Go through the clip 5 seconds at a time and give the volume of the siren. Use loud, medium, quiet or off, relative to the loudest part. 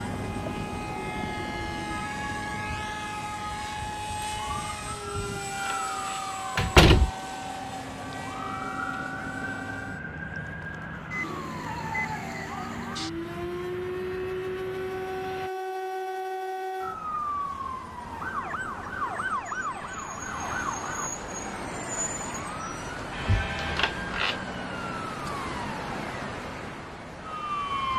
medium, medium, loud, loud, loud, loud.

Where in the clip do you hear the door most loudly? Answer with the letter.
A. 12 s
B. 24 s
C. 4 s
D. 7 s
D.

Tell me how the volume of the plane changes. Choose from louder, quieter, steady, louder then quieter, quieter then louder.
quieter.